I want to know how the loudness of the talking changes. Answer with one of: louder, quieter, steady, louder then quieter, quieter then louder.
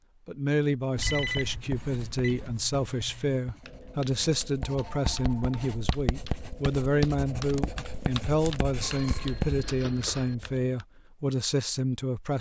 steady.